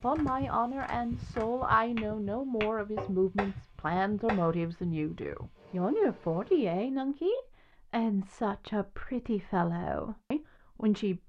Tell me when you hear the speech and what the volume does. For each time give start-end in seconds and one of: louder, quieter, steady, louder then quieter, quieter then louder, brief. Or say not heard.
0.0-11.2 steady.